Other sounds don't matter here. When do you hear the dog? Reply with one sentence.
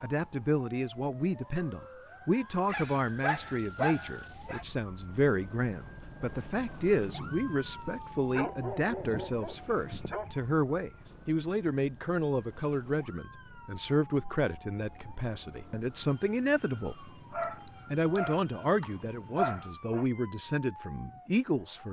You can hear the dog from 2.6 to 4.7 s, from 8.3 to 10.6 s and from 17.3 to 20.1 s.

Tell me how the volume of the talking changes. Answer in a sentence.
The loudness of the talking stays about the same.